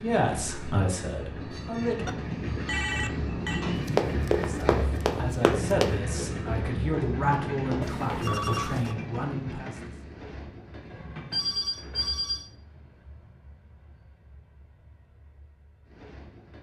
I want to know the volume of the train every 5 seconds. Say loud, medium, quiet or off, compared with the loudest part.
loud, loud, quiet, quiet.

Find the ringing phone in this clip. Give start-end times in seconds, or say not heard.
2.0-3.6, 7.8-8.9, 11.3-12.5.